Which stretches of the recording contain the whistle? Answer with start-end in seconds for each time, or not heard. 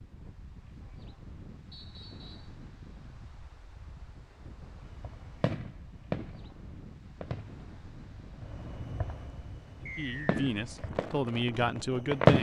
1.7-2.5, 9.8-10.4.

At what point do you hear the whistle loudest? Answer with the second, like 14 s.
10 s.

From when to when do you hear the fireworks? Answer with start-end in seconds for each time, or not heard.
5.0-12.3.